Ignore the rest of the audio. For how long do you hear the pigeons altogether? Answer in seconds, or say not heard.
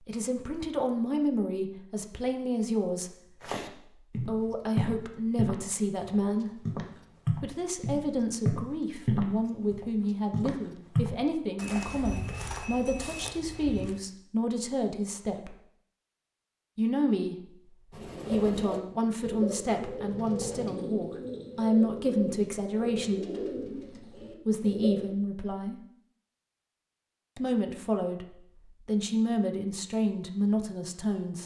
7 s.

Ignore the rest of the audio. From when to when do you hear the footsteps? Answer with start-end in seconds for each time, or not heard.
3.4-13.9.